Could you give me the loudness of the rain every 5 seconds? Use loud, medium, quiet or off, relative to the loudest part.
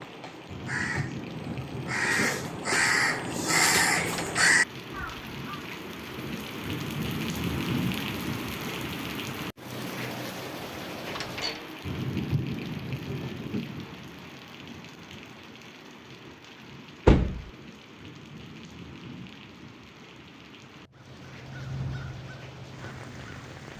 medium, loud, loud, quiet, quiet.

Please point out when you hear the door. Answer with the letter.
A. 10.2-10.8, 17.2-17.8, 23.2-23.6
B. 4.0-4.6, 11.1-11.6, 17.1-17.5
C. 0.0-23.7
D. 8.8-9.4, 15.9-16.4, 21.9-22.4
B.